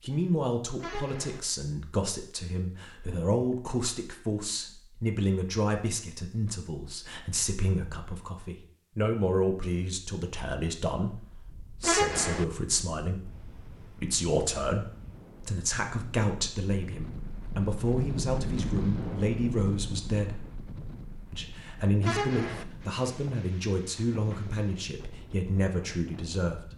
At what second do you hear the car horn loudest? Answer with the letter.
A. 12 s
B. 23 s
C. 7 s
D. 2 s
A.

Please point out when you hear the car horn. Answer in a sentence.
The car horn can be heard from 0.8 to 1.4 s, from 11.8 to 12.4 s and from 22.0 to 22.6 s.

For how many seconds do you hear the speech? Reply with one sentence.
You can hear the speech for 26 seconds altogether.